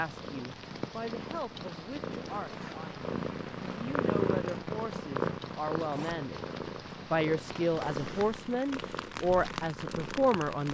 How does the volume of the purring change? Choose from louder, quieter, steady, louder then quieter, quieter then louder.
louder then quieter.